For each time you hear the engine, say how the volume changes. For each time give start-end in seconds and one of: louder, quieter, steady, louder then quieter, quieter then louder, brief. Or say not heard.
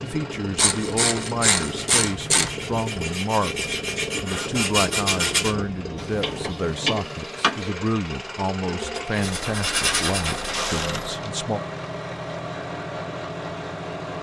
0.0-14.1 steady.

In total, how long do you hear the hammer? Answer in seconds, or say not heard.
not heard.